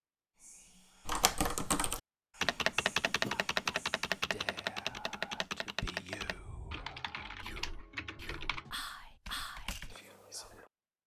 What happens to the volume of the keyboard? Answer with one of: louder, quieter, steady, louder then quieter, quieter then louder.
quieter.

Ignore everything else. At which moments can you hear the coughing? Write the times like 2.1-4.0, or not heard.
3.0-3.8.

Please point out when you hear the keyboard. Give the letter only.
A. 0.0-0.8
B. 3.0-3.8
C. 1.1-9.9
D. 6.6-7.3
C.